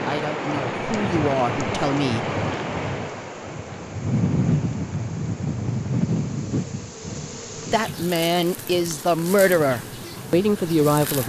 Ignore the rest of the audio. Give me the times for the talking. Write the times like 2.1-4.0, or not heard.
0.1-2.2, 7.7-11.2.